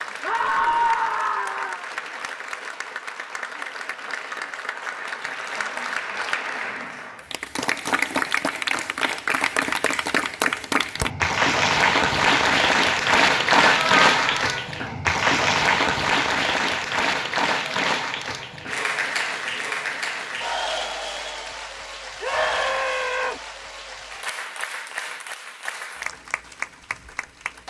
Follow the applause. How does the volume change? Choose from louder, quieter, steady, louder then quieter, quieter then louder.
louder then quieter.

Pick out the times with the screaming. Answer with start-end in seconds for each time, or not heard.
0.2-1.9, 13.8-14.7, 22.2-23.4.